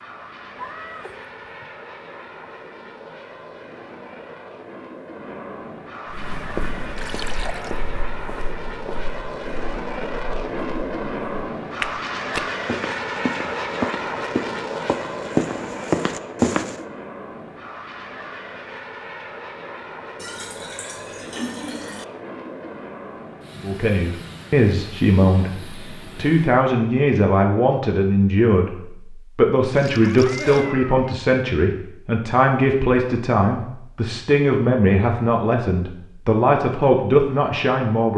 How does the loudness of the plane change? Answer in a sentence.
The volume of the plane goes up, then down.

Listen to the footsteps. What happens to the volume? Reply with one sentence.
The loudness of the footsteps goes down, then up.